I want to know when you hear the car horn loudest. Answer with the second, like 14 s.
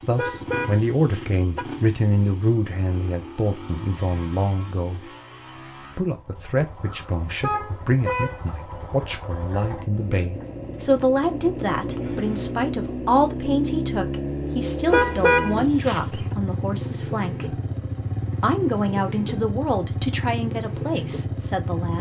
15 s.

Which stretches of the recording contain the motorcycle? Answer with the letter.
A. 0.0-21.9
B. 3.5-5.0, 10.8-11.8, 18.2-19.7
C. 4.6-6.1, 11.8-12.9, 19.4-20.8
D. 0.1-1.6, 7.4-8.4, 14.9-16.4
A.